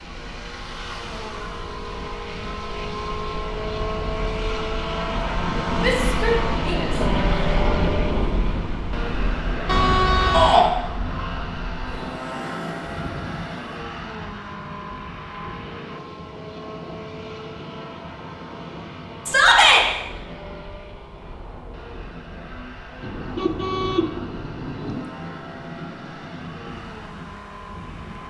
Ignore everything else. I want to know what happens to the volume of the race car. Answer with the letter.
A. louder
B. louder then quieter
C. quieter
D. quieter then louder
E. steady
C.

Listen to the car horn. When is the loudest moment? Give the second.
10 s.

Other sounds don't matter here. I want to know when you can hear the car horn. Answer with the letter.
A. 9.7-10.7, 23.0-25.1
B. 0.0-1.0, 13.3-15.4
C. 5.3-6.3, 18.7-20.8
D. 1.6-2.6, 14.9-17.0
A.